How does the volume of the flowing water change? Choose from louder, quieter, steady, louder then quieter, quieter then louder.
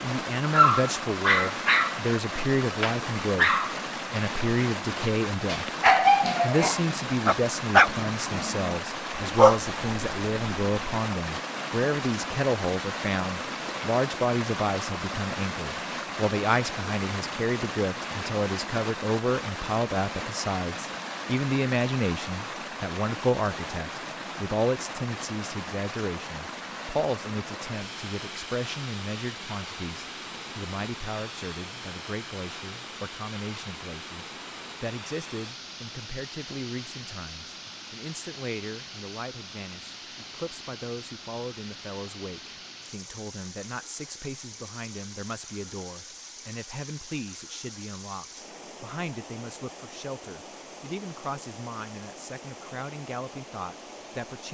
quieter.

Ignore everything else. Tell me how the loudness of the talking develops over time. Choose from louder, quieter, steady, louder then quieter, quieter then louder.
quieter.